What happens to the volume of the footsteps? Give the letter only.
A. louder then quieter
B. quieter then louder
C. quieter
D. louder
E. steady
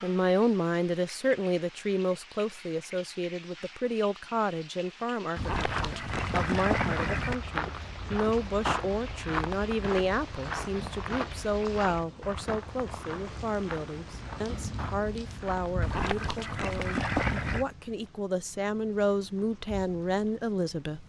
C.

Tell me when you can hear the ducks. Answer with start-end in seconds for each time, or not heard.
5.3-7.3, 15.8-17.6.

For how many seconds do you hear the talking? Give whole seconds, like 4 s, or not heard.
21 s.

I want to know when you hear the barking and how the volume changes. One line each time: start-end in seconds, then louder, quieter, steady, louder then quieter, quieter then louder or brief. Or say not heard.
not heard.